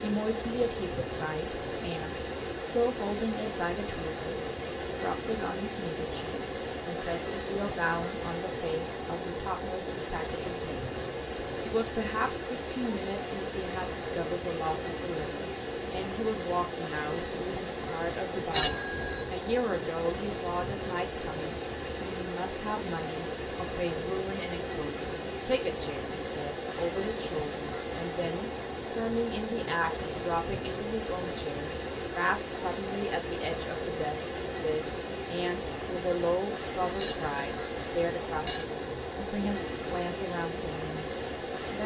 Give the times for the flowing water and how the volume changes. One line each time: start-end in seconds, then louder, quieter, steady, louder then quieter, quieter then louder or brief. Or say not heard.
0.0-41.8 steady.